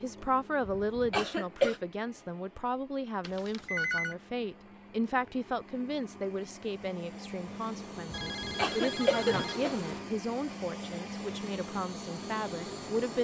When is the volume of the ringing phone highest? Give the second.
4 s.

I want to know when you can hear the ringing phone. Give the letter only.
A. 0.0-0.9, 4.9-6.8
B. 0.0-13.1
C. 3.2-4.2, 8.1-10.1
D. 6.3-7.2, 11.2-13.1
C.